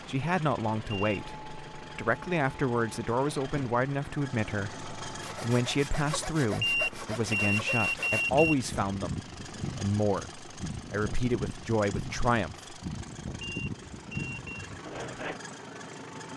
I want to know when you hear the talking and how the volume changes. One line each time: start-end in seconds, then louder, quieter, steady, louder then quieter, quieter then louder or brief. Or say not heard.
0.1-12.6 steady.